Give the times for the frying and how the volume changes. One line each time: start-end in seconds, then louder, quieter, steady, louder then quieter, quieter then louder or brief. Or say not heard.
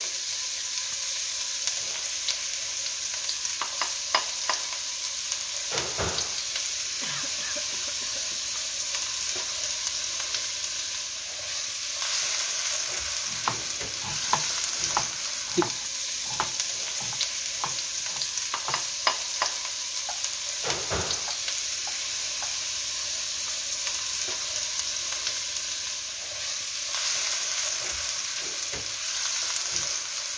0.0-30.3 steady.